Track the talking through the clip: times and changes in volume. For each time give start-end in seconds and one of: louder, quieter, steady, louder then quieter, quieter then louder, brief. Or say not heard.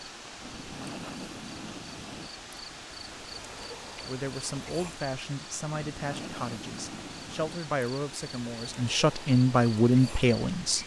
4.0-10.8 louder.